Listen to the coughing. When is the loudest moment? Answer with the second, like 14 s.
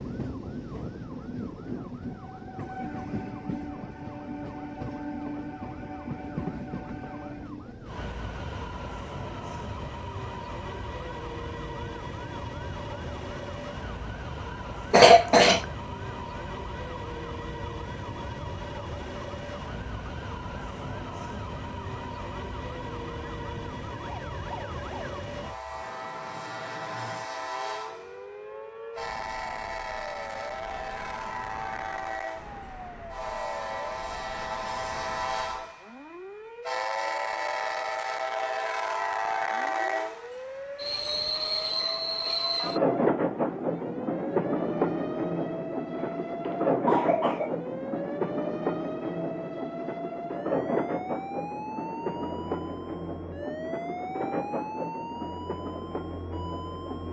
15 s.